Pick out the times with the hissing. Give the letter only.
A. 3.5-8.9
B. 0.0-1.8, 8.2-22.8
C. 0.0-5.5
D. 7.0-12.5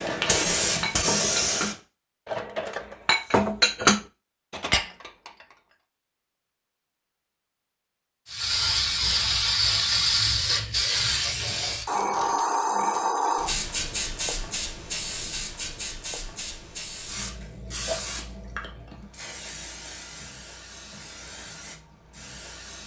B.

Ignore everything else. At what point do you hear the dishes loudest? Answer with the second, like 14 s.
4 s.